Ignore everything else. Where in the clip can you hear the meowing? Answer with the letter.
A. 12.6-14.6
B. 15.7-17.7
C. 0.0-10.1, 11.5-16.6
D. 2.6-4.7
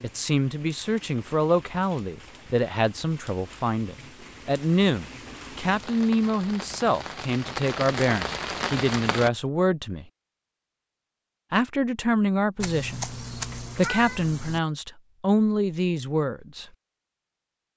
A.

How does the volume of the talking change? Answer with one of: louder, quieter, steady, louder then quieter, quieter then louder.
steady.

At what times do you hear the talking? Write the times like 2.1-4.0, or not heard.
0.0-10.1, 11.5-16.6.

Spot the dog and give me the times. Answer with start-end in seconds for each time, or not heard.
not heard.